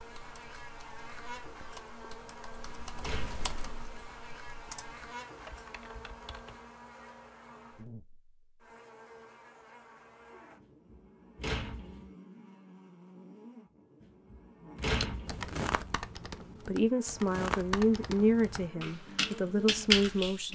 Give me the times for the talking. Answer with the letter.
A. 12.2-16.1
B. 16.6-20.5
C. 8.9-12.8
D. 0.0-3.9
B.